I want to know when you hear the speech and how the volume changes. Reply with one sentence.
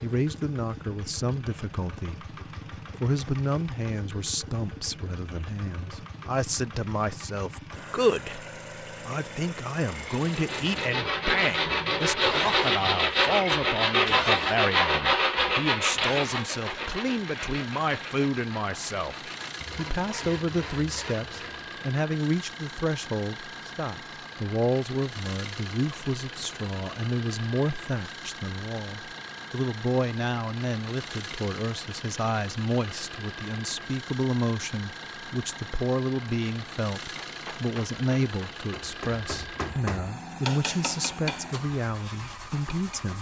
You can hear the speech briefly from 0.0 to 2.2 s; and from 3.0 to 43.1 s, at a steady volume.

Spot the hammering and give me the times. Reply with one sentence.
The hammering can be heard from 37.1 to 43.0 s.